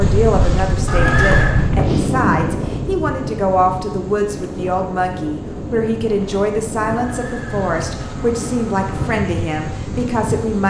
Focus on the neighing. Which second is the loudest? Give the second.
1 s.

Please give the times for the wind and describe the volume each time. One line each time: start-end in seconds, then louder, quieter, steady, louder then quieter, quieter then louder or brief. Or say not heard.
0.0-10.6 quieter.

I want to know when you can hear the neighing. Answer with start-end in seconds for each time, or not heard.
0.8-1.6, 7.0-8.9.